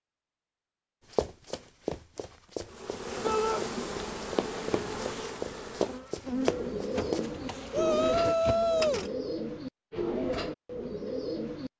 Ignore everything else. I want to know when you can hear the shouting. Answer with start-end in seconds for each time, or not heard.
3.2-3.6, 7.7-9.1.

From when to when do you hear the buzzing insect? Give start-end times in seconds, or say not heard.
2.6-9.1.